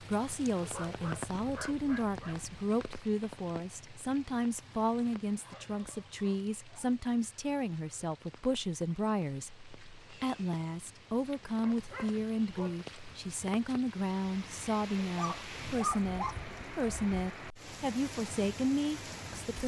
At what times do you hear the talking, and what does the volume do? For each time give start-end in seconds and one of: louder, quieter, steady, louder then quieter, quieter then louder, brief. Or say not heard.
0.0-19.6 steady.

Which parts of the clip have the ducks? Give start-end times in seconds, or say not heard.
not heard.